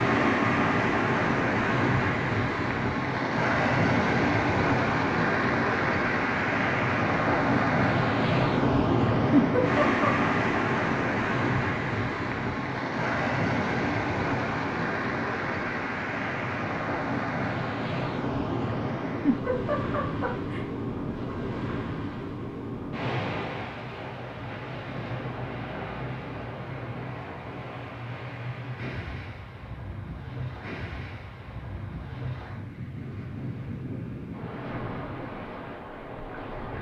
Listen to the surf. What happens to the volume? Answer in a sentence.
The loudness of the surf goes down.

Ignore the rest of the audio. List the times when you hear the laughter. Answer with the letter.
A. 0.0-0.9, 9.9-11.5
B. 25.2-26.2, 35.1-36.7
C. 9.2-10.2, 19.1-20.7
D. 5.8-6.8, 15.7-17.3
C.